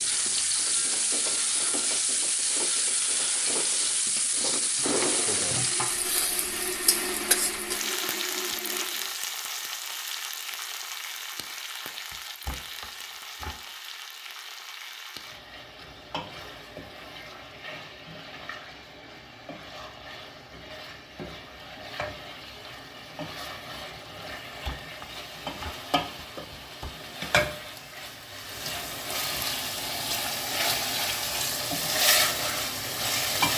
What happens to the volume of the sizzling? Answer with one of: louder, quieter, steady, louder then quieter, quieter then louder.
quieter then louder.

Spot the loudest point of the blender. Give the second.
7 s.